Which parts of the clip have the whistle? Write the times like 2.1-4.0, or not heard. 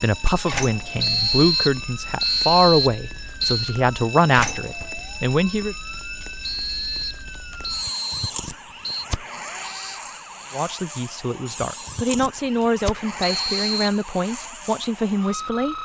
1.0-3.8, 6.4-9.1, 13.2-14.0.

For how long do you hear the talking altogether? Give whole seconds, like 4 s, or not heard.
11 s.